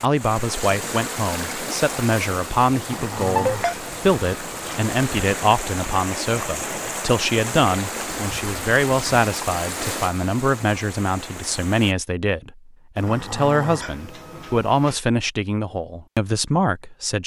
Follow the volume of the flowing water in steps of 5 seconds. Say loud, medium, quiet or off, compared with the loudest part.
loud, loud, medium, off.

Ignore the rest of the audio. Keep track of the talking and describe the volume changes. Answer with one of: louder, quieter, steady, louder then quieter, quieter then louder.
steady.